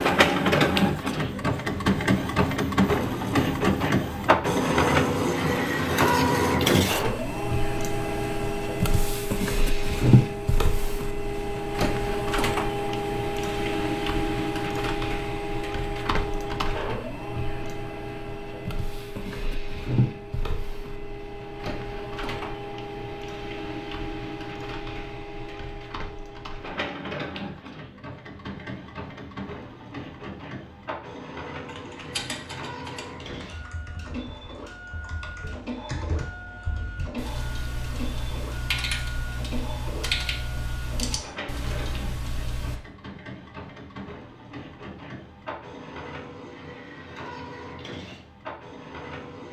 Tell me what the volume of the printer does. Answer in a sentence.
The volume of the printer goes down.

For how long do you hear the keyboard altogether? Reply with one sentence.
The keyboard can be heard for 11 seconds in total.